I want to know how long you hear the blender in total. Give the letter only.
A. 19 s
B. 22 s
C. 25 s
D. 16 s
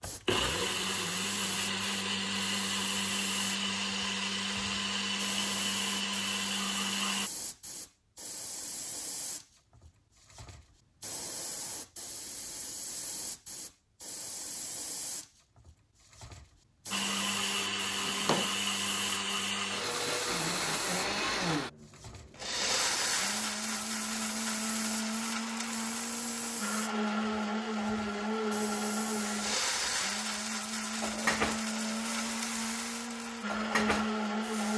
C.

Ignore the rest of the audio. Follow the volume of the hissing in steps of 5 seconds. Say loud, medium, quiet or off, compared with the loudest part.
medium, medium, medium, medium, medium, medium, loud.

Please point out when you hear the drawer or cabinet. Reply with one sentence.
You can hear the drawer or cabinet from 17.9 to 18.5 s.